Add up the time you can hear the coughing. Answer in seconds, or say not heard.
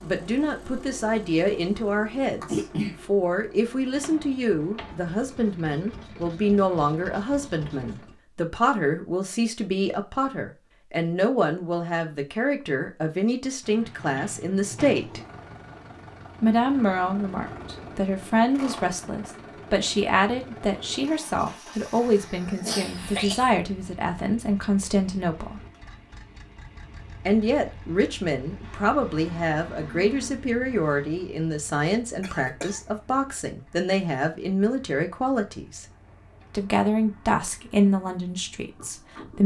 2 s.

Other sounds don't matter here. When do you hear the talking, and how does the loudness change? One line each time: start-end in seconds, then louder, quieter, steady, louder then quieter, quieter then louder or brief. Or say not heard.
0.0-15.2 steady
16.4-25.6 steady
27.2-35.9 steady
36.5-39.4 brief.